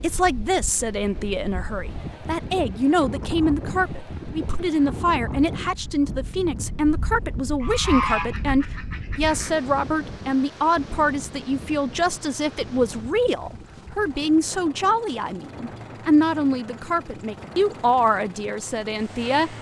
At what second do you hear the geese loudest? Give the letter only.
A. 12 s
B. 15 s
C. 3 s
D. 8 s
D.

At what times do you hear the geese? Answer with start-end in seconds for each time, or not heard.
6.8-9.5.